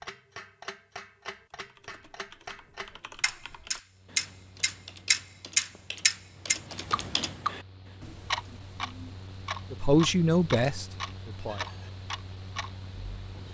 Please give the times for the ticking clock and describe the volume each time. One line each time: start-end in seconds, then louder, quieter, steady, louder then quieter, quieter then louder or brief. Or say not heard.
0.0-13.4 louder then quieter.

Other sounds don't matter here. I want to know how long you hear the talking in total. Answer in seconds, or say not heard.
2 s.